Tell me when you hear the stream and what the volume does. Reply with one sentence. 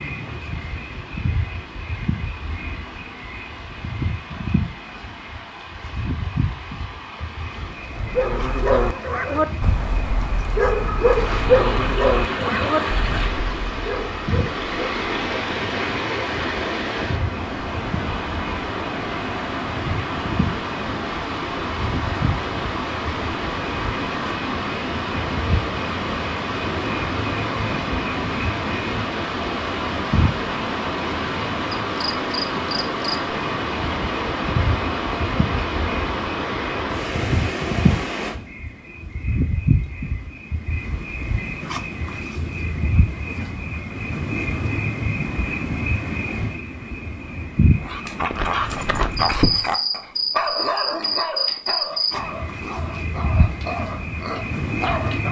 You can hear the stream from 0.0 to 38.4 s, getting louder.